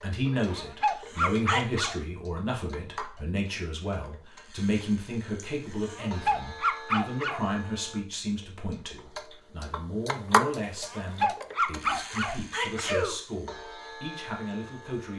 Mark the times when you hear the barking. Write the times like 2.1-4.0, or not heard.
0.5-1.9, 5.9-7.4, 10.8-12.8.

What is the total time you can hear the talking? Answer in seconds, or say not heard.
15 s.